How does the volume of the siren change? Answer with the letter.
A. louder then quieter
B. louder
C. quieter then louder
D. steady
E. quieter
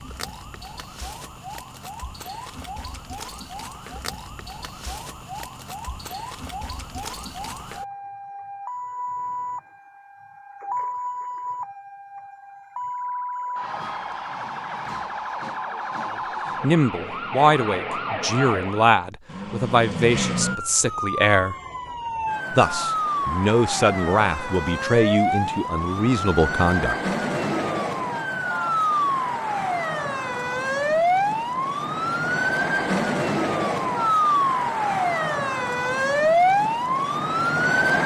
B.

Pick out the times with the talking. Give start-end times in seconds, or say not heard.
16.6-21.6, 22.5-27.1.